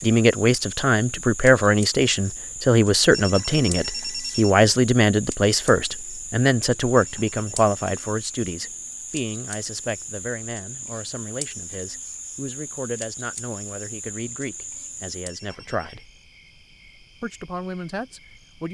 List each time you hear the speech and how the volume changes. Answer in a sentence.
The speech can be heard from 0.0 to 16.1 s, getting quieter; and briefly from 17.2 to 18.6 s.